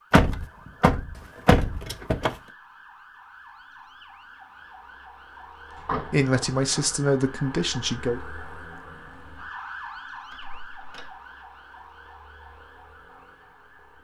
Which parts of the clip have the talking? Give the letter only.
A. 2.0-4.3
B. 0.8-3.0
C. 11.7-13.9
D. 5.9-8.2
D.